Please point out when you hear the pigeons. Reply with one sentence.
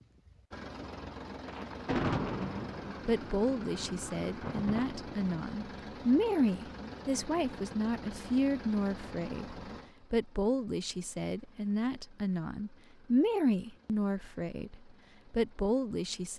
You can't hear the pigeons here.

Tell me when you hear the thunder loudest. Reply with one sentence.
The volume of the thunder peaks at 2 seconds.